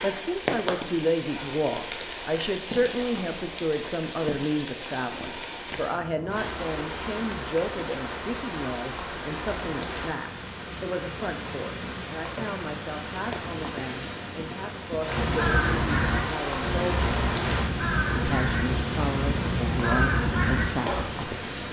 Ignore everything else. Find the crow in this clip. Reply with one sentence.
You can hear the crow from 15.1 to 21.1 s.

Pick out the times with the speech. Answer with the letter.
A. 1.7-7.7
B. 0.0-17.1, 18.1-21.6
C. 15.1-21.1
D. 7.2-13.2
B.